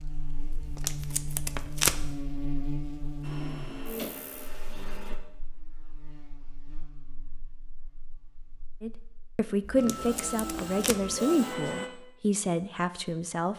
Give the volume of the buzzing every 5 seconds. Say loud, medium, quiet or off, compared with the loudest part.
loud, quiet, off.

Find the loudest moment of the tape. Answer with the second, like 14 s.
2 s.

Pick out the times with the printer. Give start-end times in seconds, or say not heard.
3.2-5.2, 9.8-11.9.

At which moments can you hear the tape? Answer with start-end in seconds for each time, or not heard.
0.6-2.1, 9.7-11.2.